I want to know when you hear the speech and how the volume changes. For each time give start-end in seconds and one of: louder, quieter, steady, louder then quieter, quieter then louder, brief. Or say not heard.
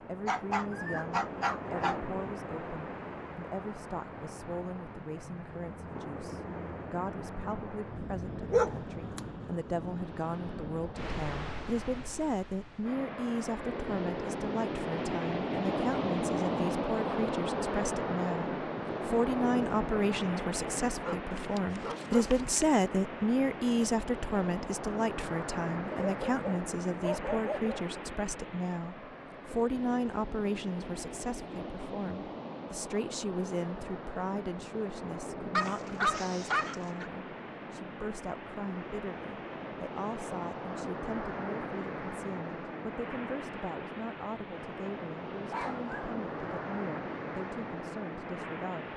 0.0-48.9 louder then quieter.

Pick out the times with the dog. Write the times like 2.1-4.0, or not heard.
0.2-2.0, 8.5-9.2, 21.0-22.8, 25.9-27.9, 35.5-37.1, 45.5-46.0.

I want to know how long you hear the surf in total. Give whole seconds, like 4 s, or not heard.
49 s.